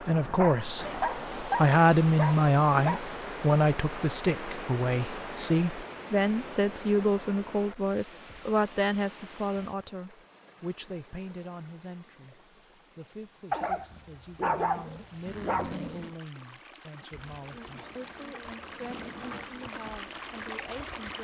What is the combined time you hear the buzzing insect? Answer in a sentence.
The buzzing insect can be heard for 4 seconds in total.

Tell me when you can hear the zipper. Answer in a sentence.
The zipper can be heard from 15.2 to 16.1 s.